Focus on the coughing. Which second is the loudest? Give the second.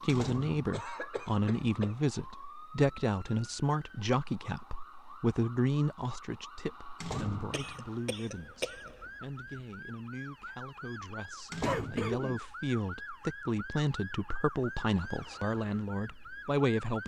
12 s.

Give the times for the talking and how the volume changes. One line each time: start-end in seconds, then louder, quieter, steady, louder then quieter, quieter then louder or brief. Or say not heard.
0.0-17.0 quieter then louder.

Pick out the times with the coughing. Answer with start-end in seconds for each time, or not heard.
0.7-1.9, 7.5-9.1, 11.6-12.4.